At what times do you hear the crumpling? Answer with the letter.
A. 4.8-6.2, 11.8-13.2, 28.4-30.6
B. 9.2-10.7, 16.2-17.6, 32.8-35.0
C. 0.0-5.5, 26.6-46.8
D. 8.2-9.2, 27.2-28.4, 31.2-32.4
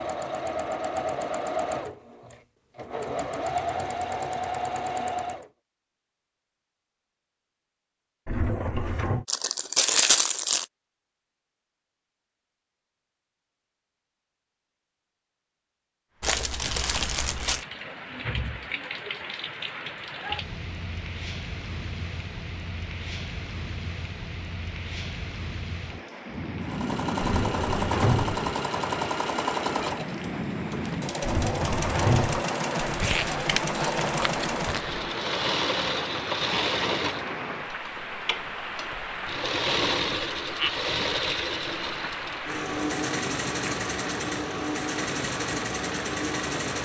B.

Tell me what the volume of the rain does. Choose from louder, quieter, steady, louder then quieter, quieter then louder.
steady.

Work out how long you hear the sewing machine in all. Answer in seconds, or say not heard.
26 s.